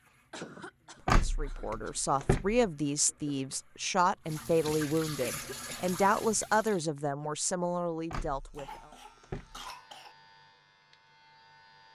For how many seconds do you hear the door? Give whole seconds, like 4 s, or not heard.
3 s.